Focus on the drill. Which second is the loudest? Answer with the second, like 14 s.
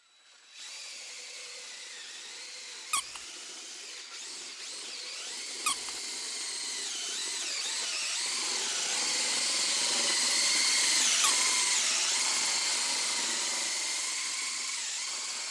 11 s.